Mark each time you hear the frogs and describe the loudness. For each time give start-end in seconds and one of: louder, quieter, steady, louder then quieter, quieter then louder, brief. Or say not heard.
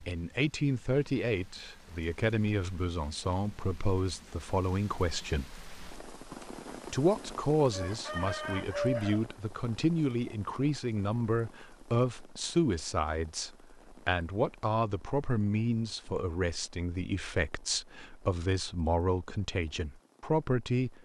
not heard.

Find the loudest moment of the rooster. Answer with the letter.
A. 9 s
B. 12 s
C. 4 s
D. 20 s
A.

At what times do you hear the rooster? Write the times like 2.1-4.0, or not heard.
7.7-9.2.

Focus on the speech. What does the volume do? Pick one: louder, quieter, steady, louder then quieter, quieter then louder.
steady.